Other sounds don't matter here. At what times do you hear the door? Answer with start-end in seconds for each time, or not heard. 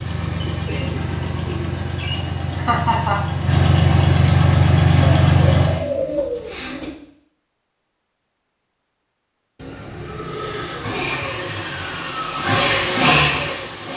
not heard.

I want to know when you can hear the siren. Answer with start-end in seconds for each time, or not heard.
not heard.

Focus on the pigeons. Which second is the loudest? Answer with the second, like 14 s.
6 s.